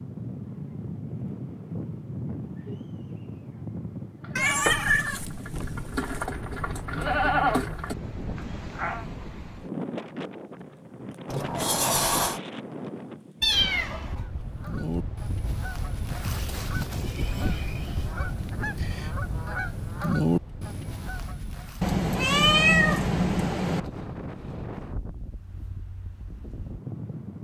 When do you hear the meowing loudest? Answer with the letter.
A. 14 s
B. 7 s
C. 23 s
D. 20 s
C.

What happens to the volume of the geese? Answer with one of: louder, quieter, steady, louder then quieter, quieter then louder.
louder.